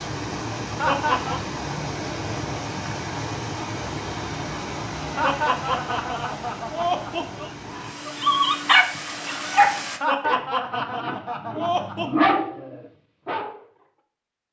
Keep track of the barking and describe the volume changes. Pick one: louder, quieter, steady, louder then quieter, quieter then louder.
quieter then louder.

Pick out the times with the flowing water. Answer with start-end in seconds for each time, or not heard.
0.0-10.0.